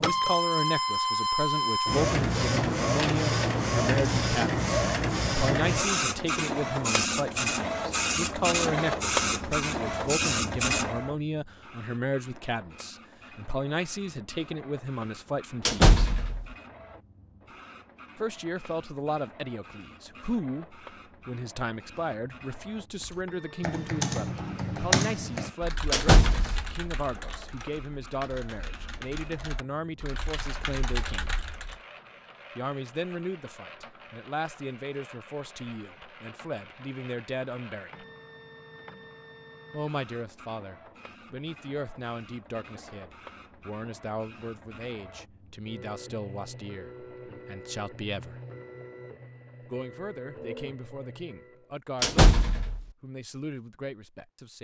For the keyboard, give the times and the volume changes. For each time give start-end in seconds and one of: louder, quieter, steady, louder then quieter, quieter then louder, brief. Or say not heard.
23.0-31.8 quieter then louder.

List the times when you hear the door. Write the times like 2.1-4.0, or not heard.
15.7-16.4, 25.9-26.8, 52.0-52.8.